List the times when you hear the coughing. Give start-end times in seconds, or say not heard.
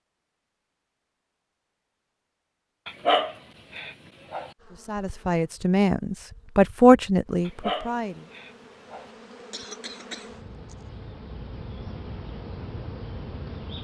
9.3-10.8.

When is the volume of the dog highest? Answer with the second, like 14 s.
3 s.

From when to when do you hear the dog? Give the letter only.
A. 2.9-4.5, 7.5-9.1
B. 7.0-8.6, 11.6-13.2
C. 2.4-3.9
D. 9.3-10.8
A.